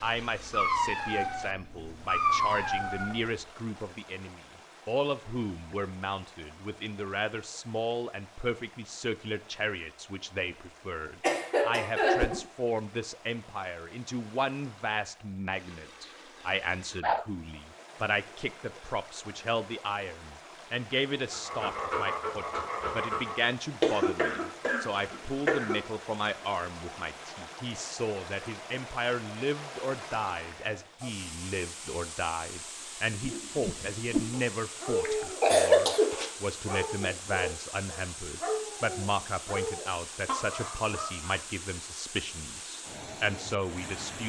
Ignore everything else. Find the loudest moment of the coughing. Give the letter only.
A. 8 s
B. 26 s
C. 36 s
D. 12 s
C.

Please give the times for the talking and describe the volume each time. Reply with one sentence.
The talking can be heard from 0.0 to 44.2 s, at a steady volume.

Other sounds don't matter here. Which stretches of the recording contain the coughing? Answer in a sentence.
You can hear the coughing from 11.2 to 12.4 s, from 23.8 to 25.8 s and from 35.0 to 36.3 s.